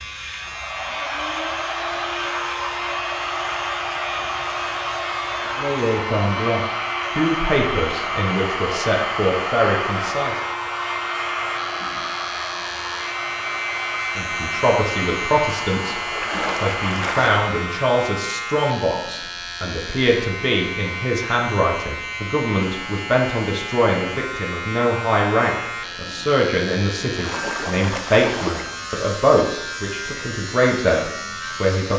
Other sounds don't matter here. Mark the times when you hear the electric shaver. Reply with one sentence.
You can hear the electric shaver from 0.0 to 31.9 s.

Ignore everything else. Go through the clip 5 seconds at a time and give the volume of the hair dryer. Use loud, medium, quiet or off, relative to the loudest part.
loud, loud, loud, medium, off, off, off.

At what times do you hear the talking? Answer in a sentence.
You can hear the talking from 5.5 to 10.4 s, from 14.2 to 16.0 s and from 16.6 to 31.9 s.